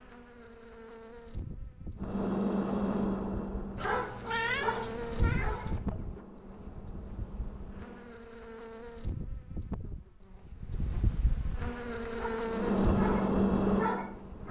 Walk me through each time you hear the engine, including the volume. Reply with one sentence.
The engine can be heard from 1.9 to 8.2 s, getting quieter; and briefly from 12.4 to 14.4 s.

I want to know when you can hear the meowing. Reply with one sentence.
You can hear the meowing from 3.8 to 5.8 s.